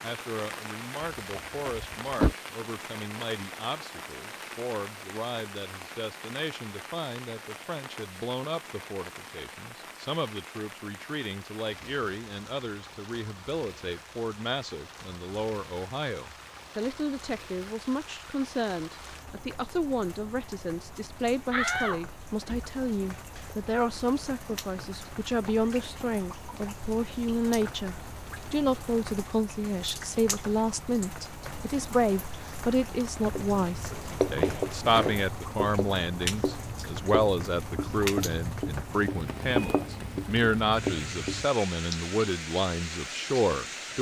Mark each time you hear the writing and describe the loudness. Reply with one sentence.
You can hear the writing from 33.2 to 41.5 s, getting quieter then louder.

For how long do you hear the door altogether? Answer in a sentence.
The door can be heard for 4 seconds in total.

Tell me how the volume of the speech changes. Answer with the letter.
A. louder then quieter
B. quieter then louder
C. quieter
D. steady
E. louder
E.